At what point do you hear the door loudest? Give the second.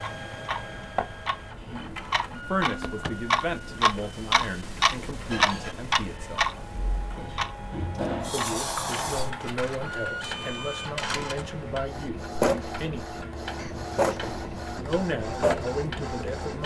9 s.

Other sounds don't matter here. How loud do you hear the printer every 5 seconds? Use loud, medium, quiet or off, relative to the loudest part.
medium, medium, loud, loud.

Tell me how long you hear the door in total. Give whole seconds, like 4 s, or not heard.
3 s.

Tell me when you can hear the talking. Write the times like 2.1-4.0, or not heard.
2.5-6.5, 8.3-13.1, 14.8-16.6.